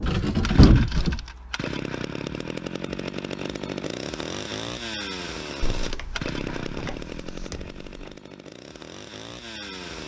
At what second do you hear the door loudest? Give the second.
1 s.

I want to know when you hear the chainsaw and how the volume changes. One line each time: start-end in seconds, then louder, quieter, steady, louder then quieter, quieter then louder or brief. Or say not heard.
0.0-10.0 quieter.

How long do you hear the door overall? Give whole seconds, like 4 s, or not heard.
4 s.